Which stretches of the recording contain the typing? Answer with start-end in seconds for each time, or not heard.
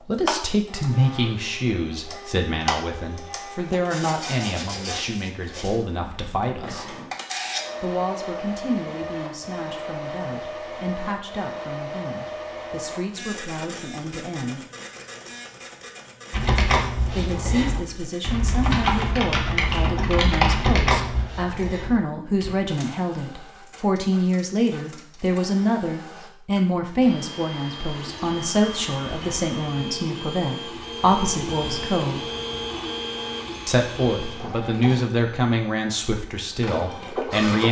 16.3-22.6.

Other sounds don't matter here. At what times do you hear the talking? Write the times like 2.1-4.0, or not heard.
0.0-7.0, 7.8-14.6, 17.1-32.2, 33.6-37.6.